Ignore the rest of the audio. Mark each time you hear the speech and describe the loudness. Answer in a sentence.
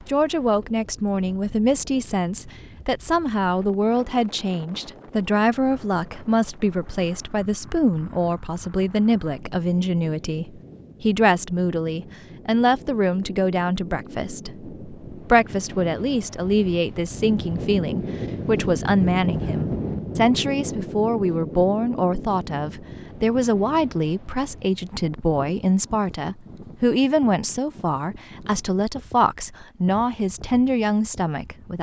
The speech can be heard from 0.1 to 31.7 s, at a steady volume.